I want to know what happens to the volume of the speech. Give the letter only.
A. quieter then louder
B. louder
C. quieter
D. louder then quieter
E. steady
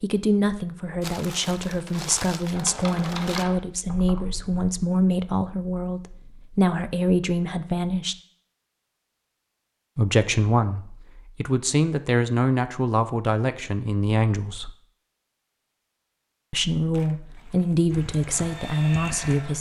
E.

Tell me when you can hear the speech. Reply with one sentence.
The speech can be heard from 0.0 to 8.2 s, from 9.9 to 14.7 s and from 16.5 to 19.5 s.